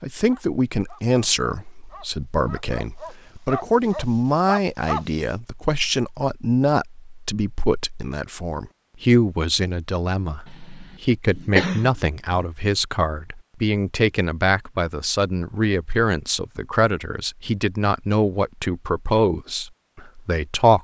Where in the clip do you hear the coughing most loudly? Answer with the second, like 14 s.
12 s.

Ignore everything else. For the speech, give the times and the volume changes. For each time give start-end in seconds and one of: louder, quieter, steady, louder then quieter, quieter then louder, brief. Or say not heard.
0.0-20.7 steady.